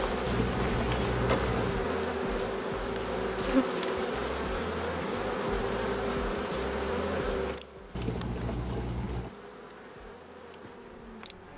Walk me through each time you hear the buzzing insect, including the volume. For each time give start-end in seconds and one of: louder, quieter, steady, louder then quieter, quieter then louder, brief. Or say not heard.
0.0-11.5 quieter.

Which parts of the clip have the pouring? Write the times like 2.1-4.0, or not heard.
0.2-1.9, 8.0-9.3.